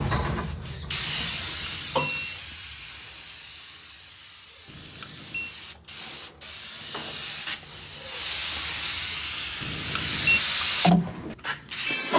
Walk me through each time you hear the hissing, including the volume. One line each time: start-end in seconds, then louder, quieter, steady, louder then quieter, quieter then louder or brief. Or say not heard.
0.0-12.1 quieter then louder.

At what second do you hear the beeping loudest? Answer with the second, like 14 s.
10 s.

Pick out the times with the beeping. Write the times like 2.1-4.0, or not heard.
1.3-2.4, 4.7-5.5, 9.6-10.4.